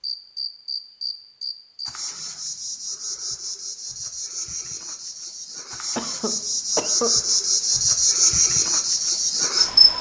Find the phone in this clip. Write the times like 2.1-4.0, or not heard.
not heard.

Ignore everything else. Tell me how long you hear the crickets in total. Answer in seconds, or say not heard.
10 s.